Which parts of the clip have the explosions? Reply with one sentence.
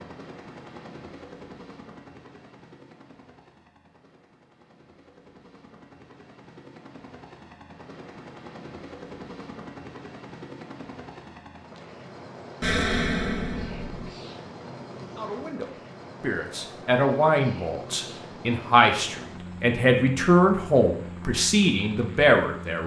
The explosions can be heard from 12.6 to 14.1 s.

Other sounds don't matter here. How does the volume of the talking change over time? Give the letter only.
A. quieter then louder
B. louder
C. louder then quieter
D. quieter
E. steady
B.